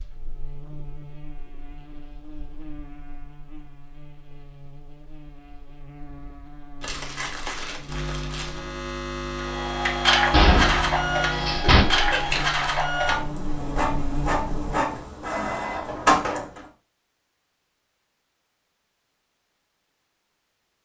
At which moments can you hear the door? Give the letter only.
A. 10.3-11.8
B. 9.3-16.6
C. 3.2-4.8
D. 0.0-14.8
A.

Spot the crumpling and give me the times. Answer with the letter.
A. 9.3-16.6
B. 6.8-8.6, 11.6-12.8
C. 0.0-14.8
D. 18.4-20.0
B.